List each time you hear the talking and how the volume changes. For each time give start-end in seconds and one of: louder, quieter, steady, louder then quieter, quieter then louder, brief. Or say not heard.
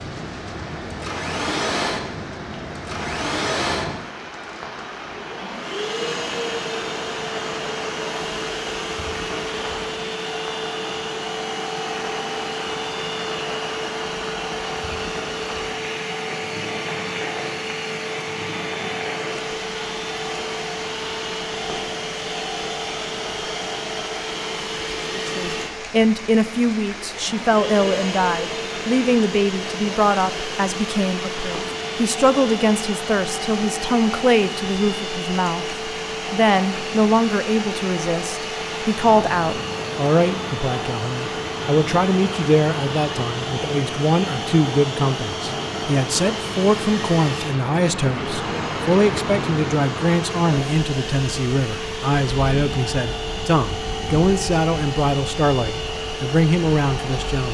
25.1-57.5 steady.